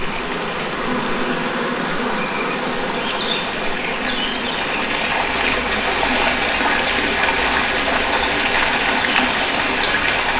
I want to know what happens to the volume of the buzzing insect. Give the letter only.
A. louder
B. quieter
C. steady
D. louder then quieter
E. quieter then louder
B.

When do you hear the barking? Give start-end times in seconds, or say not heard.
not heard.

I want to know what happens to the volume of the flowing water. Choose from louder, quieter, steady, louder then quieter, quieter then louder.
louder.